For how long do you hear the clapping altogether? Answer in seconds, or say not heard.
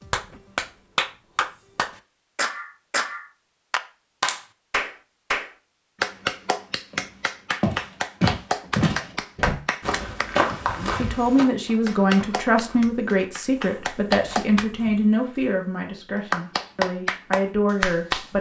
15 s.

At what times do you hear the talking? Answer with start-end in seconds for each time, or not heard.
10.8-18.3.